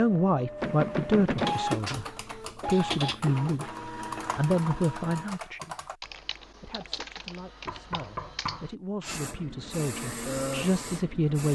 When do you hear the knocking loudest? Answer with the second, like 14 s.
1 s.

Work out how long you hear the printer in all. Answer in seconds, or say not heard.
8 s.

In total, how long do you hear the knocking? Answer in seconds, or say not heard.
2 s.